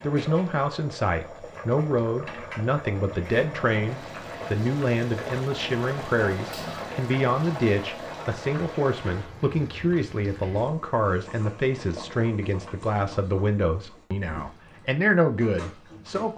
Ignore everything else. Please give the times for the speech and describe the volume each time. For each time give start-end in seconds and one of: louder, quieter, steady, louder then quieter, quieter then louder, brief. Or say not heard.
0.0-16.3 steady.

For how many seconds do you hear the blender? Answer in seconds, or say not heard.
not heard.